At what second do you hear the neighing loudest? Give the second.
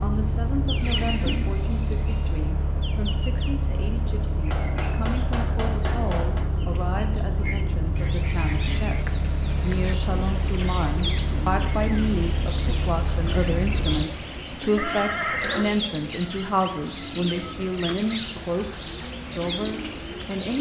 15 s.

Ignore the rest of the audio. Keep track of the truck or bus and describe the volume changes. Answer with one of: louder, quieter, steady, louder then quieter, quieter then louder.
steady.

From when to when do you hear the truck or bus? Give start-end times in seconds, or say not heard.
0.0-14.1.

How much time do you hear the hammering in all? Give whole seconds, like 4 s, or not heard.
2 s.